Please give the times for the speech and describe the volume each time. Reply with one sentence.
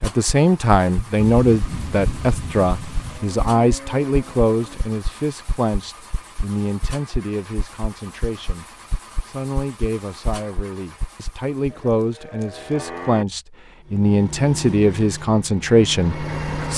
The speech can be heard from 0.0 to 16.7 s, getting quieter then louder.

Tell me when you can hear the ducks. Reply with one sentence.
You can't hear the ducks here.